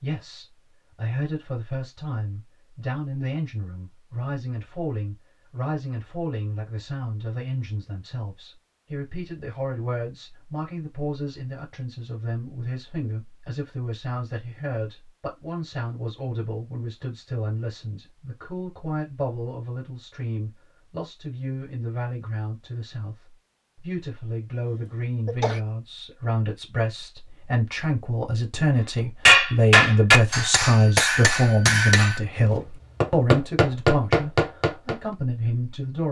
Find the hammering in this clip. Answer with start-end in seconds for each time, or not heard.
29.2-35.0.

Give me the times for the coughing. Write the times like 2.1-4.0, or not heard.
24.5-25.6.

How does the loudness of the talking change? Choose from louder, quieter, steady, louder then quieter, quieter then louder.
louder.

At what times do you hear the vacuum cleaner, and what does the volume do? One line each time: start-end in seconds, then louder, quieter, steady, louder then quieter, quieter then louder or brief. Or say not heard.
not heard.